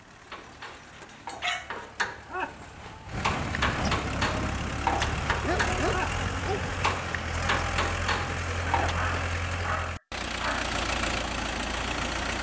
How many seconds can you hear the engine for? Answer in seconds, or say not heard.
12 s.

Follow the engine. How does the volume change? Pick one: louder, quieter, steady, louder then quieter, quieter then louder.
louder.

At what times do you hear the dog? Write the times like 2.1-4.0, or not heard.
0.9-1.8, 5.0-6.7, 8.9-10.7.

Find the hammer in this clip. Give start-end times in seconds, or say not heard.
0.2-8.9.